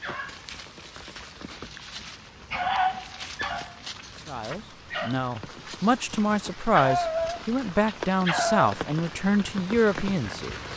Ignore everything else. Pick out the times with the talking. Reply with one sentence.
The talking can be heard from 4.2 to 10.7 s.